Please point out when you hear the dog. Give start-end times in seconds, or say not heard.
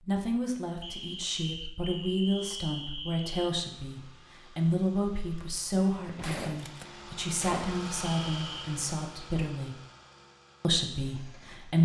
not heard.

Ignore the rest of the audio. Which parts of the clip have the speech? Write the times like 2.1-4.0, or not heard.
0.1-9.8, 10.6-11.8.